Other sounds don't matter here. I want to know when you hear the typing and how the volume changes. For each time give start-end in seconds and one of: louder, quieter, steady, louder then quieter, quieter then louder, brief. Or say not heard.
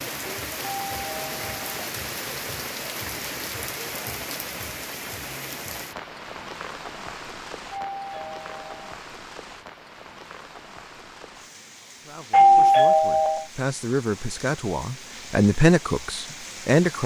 not heard.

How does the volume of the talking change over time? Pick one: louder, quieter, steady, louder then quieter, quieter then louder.
louder then quieter.